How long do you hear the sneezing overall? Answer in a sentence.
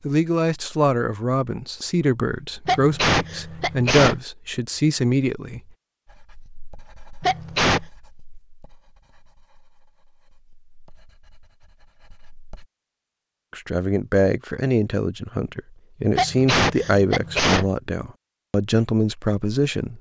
The sneezing can be heard for 4 seconds in total.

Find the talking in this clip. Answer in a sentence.
You can hear the talking from 0.0 to 5.6 s and from 13.5 to 19.9 s.